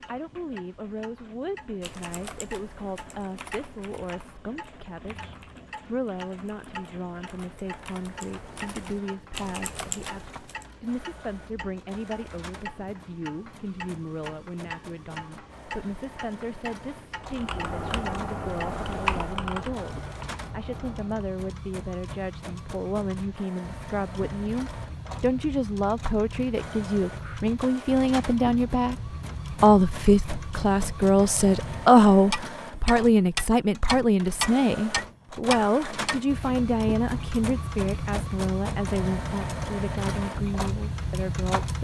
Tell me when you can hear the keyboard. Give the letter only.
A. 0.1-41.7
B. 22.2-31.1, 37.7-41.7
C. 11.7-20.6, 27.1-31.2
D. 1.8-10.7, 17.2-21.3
D.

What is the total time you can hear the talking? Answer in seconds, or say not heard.
42 s.